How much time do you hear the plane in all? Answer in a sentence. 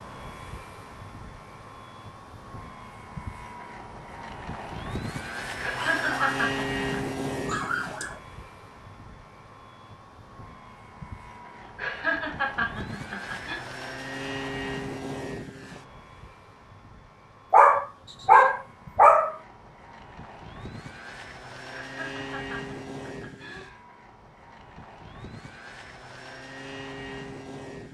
The plane can be heard for 28 seconds in total.